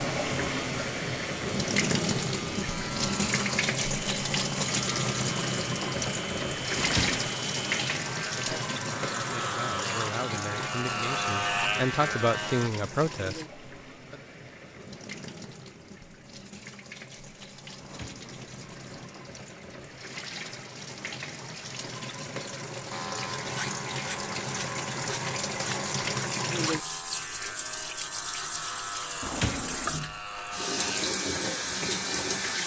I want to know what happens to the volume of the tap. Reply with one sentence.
The loudness of the tap goes down, then up.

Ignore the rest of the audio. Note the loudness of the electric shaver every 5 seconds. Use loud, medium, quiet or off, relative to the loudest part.
medium, medium, loud, off, medium, medium, medium.